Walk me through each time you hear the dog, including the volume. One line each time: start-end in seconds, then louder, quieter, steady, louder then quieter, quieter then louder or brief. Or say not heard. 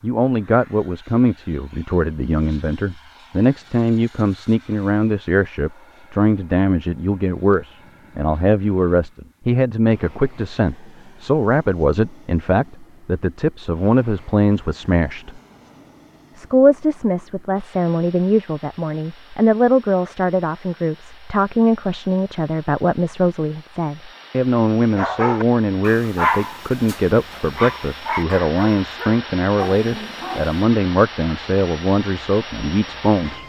24.9-30.6 quieter.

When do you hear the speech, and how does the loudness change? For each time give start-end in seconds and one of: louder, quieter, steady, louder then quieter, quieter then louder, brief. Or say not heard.
0.0-15.4 steady
16.4-33.4 steady.